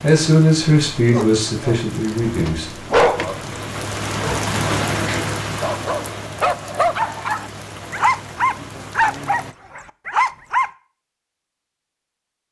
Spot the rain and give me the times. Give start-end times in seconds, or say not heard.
0.0-9.6.